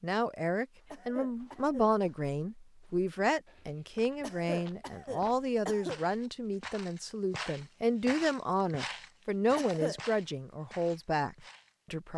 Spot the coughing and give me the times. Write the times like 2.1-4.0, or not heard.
0.9-1.9, 4.2-6.0, 9.6-10.0.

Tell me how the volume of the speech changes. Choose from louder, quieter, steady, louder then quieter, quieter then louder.
steady.